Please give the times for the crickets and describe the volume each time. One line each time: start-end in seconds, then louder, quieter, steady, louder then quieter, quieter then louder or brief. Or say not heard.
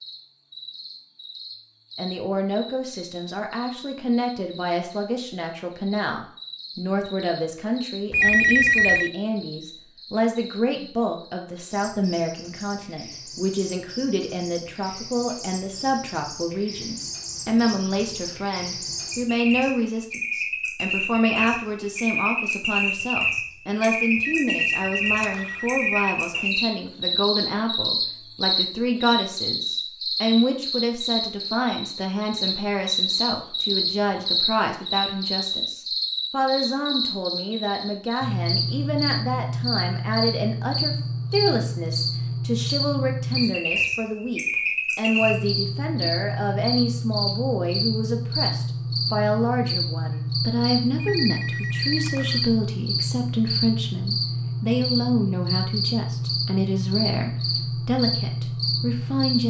0.0-59.4 louder.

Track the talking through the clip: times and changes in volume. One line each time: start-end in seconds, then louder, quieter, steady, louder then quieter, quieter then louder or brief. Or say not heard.
1.9-59.4 steady.